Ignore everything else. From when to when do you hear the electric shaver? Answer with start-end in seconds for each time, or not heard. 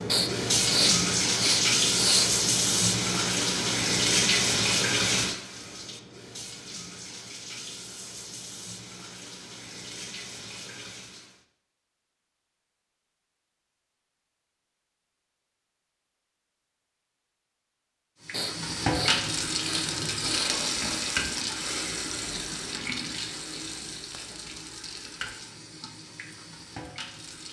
not heard.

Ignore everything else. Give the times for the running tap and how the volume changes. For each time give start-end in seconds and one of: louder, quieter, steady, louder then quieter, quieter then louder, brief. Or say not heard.
0.0-11.4 quieter
18.2-27.4 quieter.